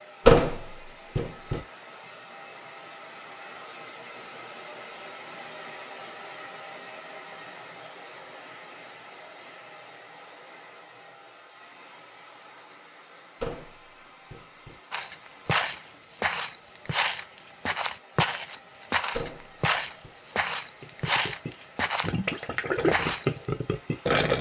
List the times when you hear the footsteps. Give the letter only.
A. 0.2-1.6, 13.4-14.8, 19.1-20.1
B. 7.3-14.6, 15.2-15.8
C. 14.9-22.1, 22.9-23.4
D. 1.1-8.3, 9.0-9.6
C.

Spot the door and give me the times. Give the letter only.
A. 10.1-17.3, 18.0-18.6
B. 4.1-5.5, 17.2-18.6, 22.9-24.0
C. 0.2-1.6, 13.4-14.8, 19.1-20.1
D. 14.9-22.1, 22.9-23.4
C.